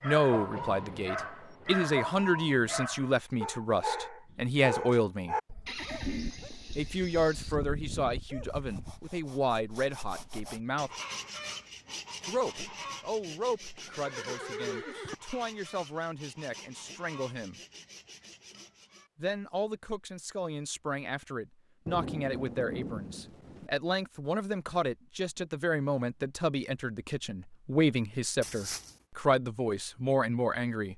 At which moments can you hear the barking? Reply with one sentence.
You can hear the barking from 0.0 to 9.0 s.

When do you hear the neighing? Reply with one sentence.
The neighing can be heard from 5.7 to 7.5 s, from 13.8 to 15.2 s and from 28.4 to 28.9 s.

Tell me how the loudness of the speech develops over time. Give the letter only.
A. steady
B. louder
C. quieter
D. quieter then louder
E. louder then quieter
D.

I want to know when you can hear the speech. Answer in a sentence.
You can hear the speech from 0.0 to 5.3 s, from 6.8 to 10.9 s, from 12.2 to 17.6 s and from 19.1 to 30.9 s.